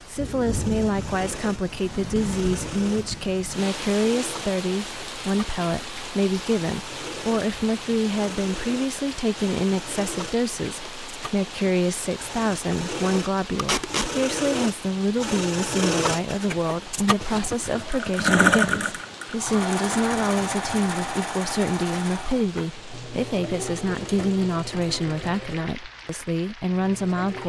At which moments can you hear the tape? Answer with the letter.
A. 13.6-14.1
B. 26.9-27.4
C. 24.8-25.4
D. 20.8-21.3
A.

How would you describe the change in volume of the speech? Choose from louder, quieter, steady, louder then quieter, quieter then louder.
steady.